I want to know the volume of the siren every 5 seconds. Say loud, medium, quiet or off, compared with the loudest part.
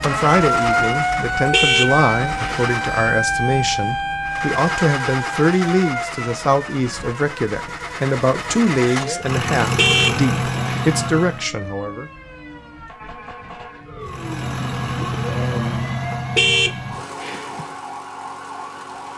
loud, medium, quiet, quiet.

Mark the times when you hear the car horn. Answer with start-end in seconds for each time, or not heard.
1.5-2.6, 9.8-10.9, 16.4-17.6.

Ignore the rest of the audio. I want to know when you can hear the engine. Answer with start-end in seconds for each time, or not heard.
0.0-3.2, 4.2-11.5, 14.0-19.1.